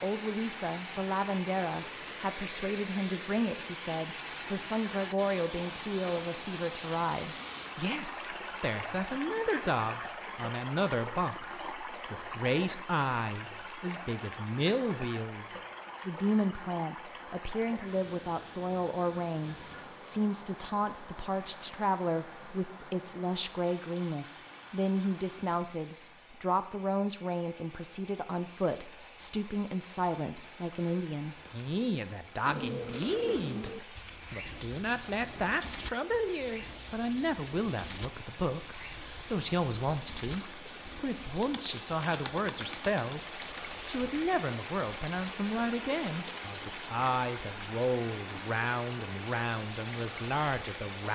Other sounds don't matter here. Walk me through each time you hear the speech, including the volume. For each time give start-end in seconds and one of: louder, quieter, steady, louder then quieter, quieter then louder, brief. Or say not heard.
0.0-51.0 steady.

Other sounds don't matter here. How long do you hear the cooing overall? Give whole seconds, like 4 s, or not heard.
11 s.